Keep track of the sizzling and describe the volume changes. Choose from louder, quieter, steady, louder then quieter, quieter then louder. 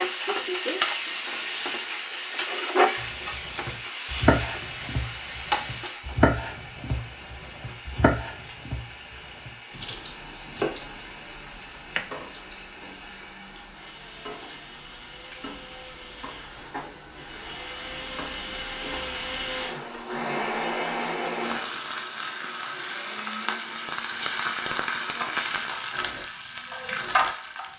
quieter then louder.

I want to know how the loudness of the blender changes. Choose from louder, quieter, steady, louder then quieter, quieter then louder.
louder then quieter.